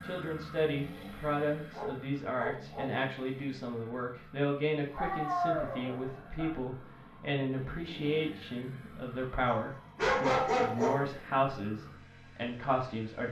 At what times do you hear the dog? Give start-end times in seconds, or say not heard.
1.7-2.9, 5.0-6.5, 9.4-11.2.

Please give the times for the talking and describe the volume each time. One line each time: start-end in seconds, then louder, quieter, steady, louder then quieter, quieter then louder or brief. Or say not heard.
0.0-13.2 steady.